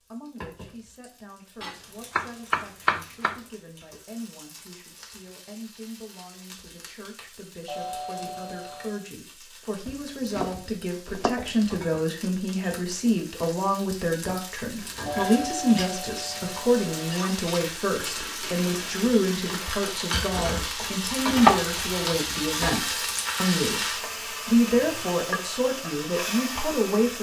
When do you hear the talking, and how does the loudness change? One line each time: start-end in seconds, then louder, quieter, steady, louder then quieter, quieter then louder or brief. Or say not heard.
0.0-27.1 louder.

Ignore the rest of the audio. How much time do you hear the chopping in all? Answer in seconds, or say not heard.
5 s.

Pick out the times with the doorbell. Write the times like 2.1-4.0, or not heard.
7.7-9.0, 15.1-17.1.